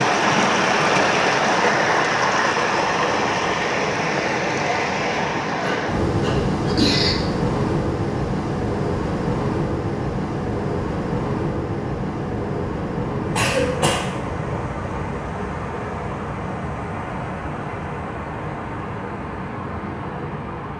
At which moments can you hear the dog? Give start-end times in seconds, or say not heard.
not heard.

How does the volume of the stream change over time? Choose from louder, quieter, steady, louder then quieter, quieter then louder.
quieter.